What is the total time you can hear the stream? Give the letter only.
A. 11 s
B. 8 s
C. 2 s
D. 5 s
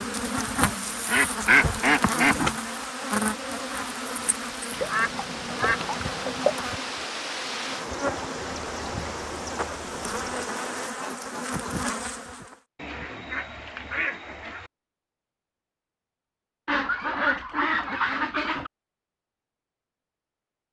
A.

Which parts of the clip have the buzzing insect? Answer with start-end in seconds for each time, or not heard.
0.0-12.6.